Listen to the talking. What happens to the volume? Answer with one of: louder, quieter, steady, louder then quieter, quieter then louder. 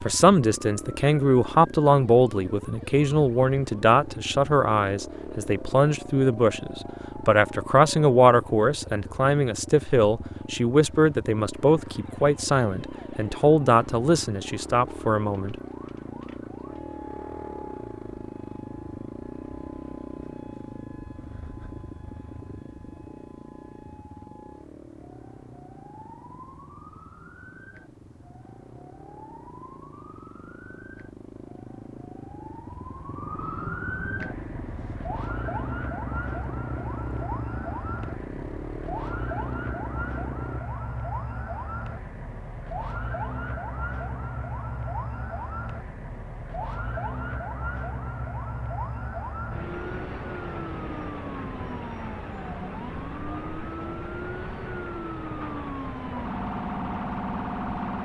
steady.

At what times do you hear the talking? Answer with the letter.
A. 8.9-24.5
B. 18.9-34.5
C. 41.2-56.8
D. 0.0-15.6
D.